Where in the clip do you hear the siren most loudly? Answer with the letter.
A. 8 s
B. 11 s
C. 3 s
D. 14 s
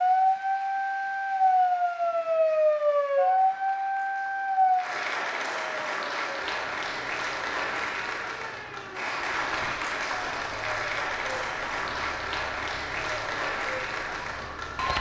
C.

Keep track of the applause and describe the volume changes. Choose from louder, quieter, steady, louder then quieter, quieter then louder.
louder.